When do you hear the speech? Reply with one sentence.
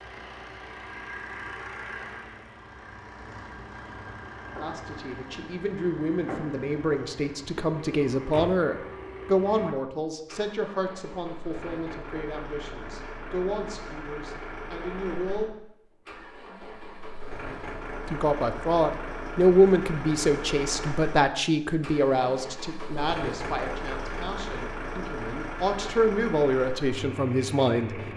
The speech can be heard from 4.6 to 15.4 s and from 18.1 to 28.0 s.